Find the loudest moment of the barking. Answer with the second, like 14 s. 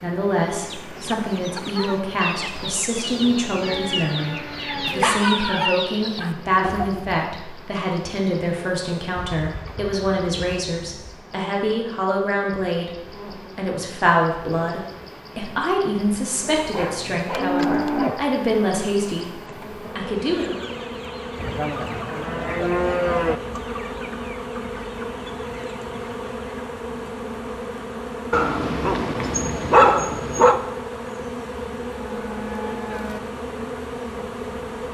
30 s.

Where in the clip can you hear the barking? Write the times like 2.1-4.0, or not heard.
4.8-6.3, 16.7-18.2, 28.3-30.6.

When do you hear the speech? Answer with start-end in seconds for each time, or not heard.
0.0-12.9, 13.6-20.6.